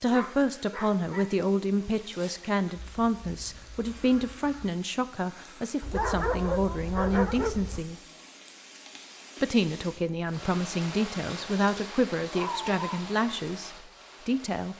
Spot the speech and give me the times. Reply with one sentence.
The speech can be heard from 0.0 to 8.0 s and from 9.4 to 14.7 s.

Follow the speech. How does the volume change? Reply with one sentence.
The volume of the speech stays about the same.